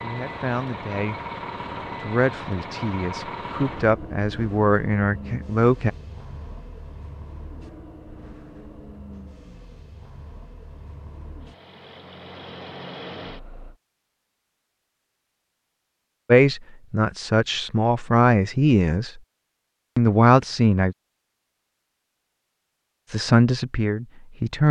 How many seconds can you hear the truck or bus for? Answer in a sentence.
The truck or bus can be heard for 14 seconds in total.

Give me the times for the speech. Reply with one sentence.
You can hear the speech from 0.0 to 1.1 s, from 2.0 to 5.9 s, from 16.2 to 19.1 s, from 19.9 to 20.9 s and from 23.1 to 24.6 s.